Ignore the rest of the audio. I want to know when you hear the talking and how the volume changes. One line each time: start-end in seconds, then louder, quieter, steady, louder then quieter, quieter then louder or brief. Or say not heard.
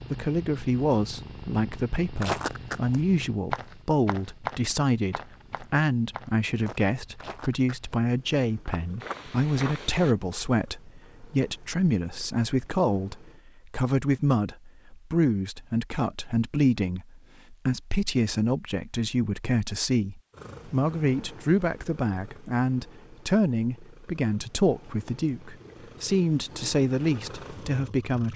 0.1-28.3 steady.